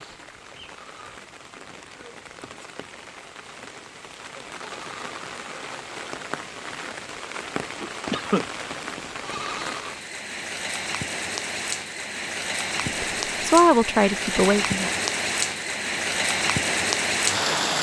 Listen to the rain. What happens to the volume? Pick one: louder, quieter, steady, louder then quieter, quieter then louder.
louder.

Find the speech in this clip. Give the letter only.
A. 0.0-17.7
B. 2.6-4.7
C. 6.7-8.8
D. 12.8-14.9
D.